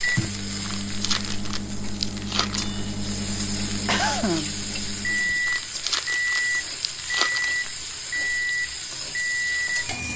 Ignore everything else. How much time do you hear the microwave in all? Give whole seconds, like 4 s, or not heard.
10 s.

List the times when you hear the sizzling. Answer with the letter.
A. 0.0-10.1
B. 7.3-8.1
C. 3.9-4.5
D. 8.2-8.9
A.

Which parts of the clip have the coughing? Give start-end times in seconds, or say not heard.
3.9-4.5.